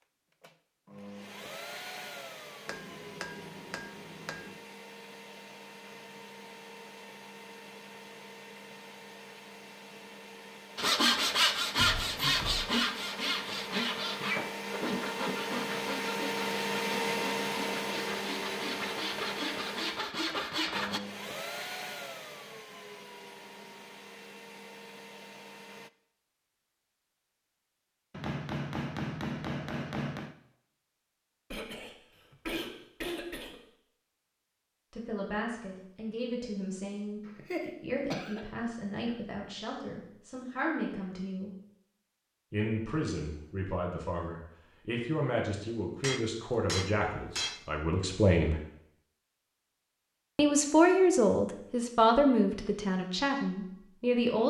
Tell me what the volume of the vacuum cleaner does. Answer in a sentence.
The volume of the vacuum cleaner goes up, then down.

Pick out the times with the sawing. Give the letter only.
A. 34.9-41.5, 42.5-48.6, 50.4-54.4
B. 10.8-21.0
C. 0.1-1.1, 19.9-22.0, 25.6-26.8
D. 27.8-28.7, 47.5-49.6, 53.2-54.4
B.